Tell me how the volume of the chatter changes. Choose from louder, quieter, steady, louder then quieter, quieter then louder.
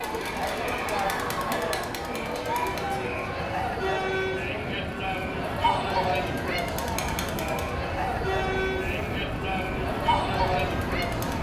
steady.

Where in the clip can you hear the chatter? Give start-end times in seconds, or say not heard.
0.0-11.3.